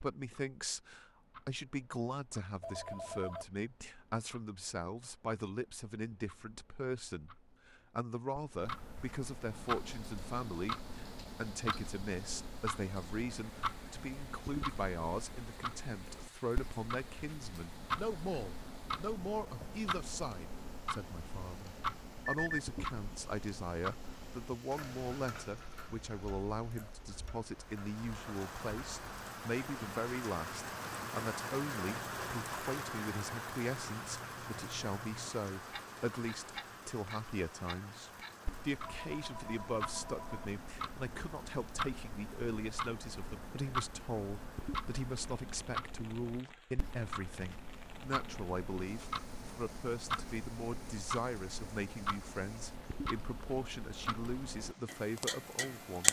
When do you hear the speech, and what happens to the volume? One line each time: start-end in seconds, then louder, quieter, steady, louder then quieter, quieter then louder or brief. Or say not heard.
0.0-56.0 steady.